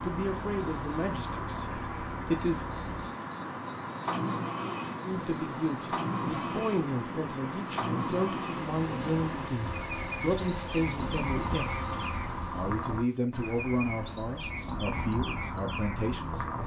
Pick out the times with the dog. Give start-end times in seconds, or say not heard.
not heard.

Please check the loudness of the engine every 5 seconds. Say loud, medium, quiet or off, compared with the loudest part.
loud, loud, loud, off.